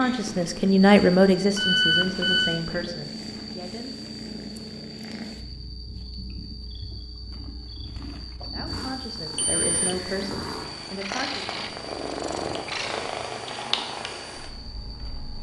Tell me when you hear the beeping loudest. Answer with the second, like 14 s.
2 s.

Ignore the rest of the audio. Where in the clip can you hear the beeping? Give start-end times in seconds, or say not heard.
1.6-2.6, 9.3-9.9.